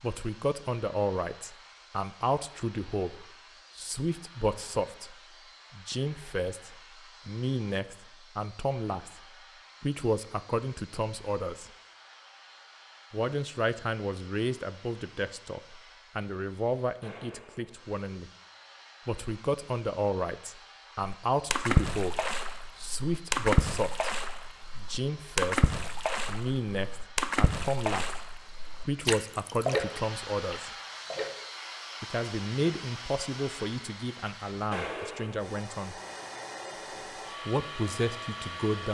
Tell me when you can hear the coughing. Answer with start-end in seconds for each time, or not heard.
not heard.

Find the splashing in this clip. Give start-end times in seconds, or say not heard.
21.0-31.3.